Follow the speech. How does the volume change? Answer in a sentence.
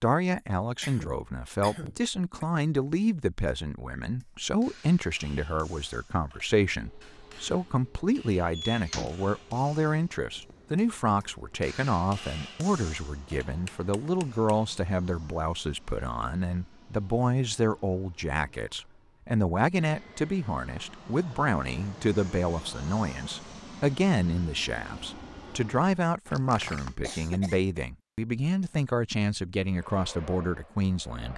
The loudness of the speech stays about the same.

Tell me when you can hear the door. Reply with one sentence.
You can hear the door from 8.5 to 9.2 s and from 26.2 to 27.0 s.